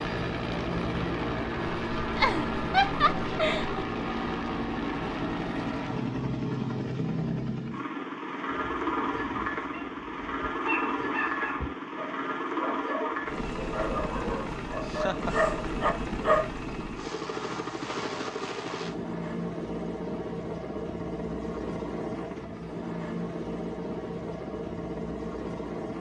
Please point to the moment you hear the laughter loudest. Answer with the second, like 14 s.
3 s.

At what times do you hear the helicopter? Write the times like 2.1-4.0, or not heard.
0.0-25.9.